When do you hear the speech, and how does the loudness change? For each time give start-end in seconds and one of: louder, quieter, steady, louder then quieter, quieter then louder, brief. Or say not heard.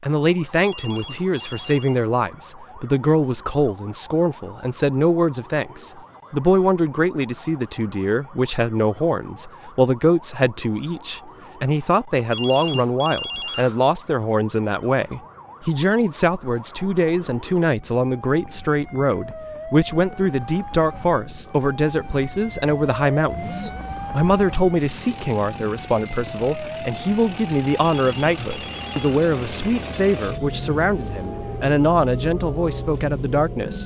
0.0-33.8 steady.